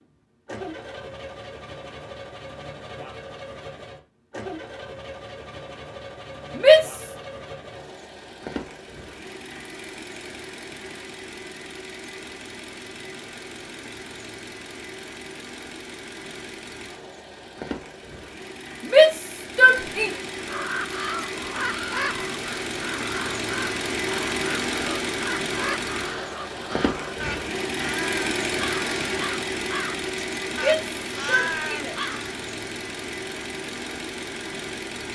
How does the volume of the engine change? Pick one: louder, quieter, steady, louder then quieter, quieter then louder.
louder.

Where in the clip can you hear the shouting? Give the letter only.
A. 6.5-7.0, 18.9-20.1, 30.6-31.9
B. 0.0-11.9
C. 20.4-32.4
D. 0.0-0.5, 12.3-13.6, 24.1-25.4
A.